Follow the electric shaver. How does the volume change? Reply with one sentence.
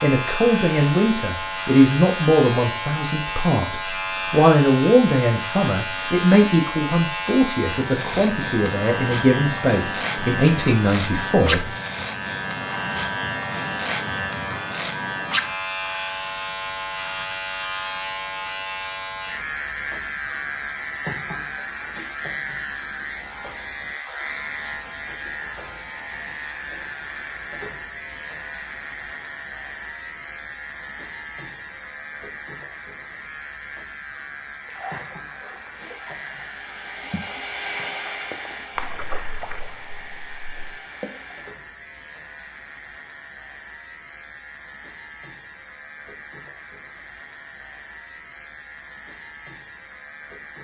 The loudness of the electric shaver goes down.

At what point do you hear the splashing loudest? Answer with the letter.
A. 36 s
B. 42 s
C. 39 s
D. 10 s
C.